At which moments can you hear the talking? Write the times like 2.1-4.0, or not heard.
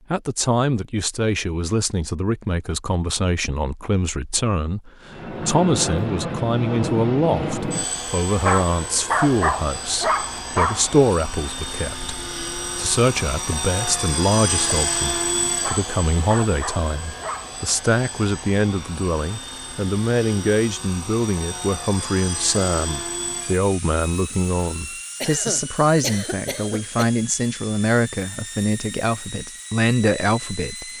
0.1-30.9.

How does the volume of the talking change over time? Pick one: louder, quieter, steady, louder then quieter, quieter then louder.
steady.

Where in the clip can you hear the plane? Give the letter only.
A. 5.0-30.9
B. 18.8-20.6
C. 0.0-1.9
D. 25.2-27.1
A.